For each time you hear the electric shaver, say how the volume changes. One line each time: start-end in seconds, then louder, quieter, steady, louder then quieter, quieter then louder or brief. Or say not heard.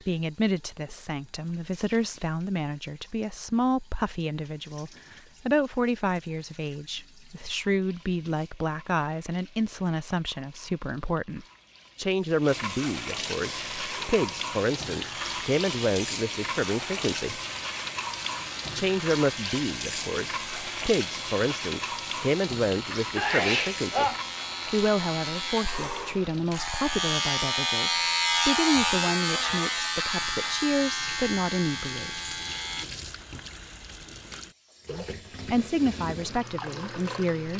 13.4-32.9 louder.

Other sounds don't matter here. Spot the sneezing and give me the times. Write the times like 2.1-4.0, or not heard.
23.1-24.2.